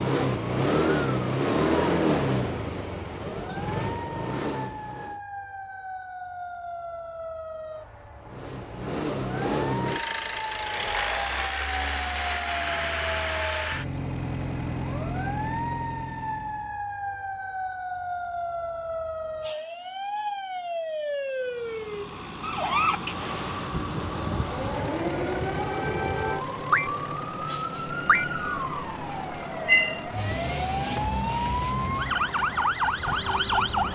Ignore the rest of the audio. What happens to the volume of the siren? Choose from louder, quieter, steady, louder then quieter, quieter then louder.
louder.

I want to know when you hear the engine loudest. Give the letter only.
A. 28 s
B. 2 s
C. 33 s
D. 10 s
B.